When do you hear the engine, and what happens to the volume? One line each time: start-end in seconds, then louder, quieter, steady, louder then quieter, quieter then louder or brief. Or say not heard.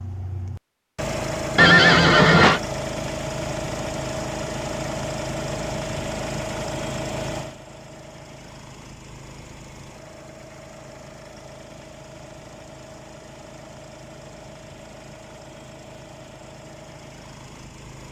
0.0-18.0 quieter.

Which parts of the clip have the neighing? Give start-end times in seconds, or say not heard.
1.6-2.6.